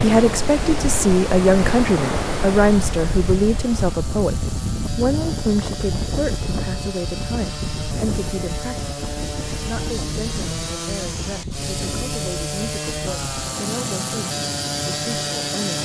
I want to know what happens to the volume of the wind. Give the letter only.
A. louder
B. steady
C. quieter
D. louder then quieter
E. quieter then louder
C.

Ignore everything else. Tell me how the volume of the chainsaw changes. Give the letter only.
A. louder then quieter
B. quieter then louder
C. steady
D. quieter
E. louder
E.